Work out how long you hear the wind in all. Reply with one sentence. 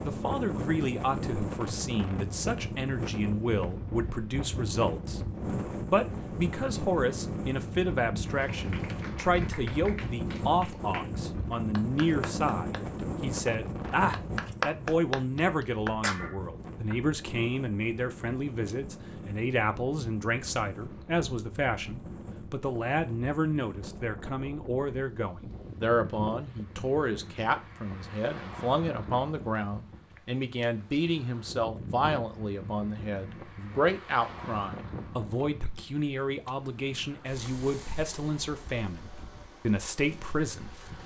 You can hear the wind for 41 seconds altogether.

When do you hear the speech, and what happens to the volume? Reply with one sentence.
The speech can be heard from 0.0 to 41.0 s, at a steady volume.